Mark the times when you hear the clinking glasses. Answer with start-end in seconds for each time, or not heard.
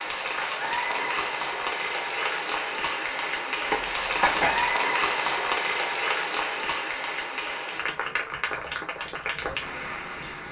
3.7-4.7.